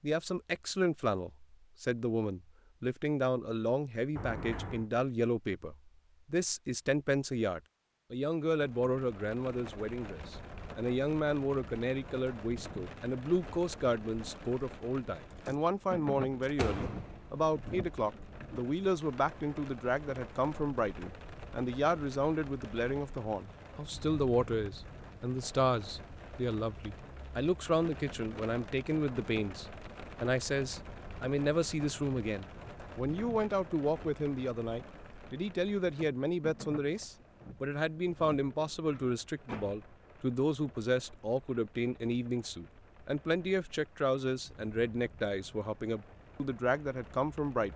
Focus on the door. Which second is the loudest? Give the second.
17 s.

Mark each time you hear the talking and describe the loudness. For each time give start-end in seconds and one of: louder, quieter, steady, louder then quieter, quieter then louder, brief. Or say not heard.
0.0-47.7 steady.